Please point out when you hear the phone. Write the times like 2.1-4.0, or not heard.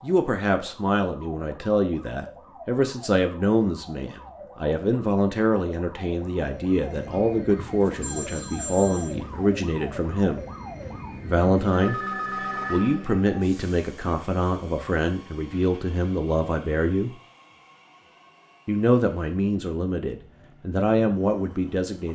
8.0-9.2, 11.1-13.1.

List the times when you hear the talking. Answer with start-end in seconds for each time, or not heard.
0.0-10.4, 11.2-12.0, 12.7-17.1, 18.6-22.1.